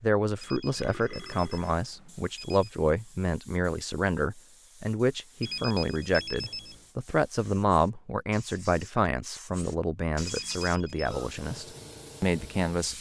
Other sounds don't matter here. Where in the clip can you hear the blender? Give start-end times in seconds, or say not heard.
not heard.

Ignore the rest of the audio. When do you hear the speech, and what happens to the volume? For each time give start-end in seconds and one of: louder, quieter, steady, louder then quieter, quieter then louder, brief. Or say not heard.
0.0-12.9 steady.